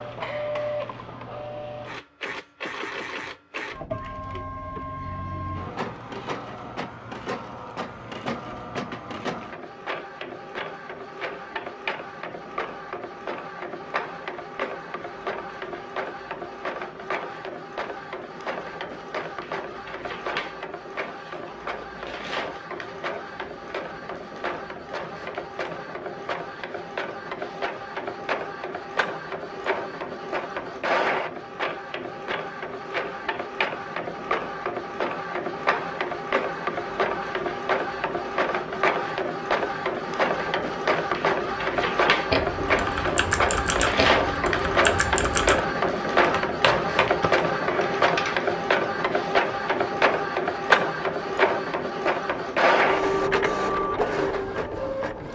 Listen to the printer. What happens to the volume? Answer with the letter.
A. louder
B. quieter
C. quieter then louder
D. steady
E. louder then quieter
A.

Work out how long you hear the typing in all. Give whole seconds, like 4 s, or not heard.
6 s.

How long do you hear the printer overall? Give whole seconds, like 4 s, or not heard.
55 s.